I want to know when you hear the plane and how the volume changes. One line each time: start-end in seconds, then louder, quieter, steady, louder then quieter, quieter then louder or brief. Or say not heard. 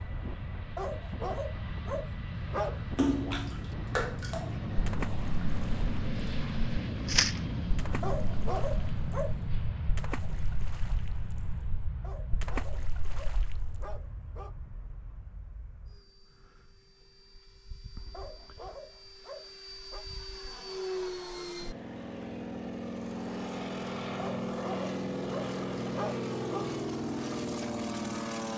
0.0-28.5 quieter then louder.